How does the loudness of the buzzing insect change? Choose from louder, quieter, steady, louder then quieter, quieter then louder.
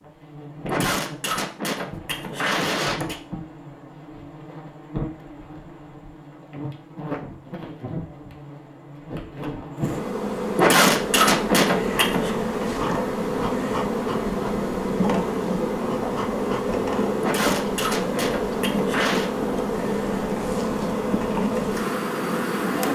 louder.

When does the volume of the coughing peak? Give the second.
11 s.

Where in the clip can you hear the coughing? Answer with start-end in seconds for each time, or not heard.
0.7-3.1, 10.6-12.3, 17.2-19.3.